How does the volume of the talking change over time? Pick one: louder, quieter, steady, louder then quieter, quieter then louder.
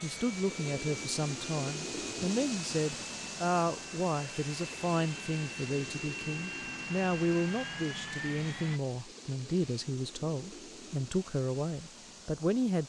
steady.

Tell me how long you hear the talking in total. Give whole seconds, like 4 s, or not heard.
13 s.